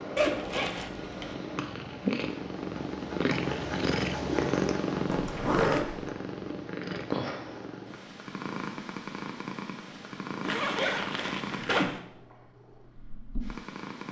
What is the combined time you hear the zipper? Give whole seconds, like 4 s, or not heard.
4 s.